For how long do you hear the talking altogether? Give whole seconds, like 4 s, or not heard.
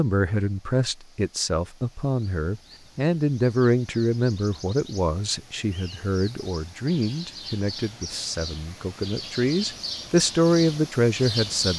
12 s.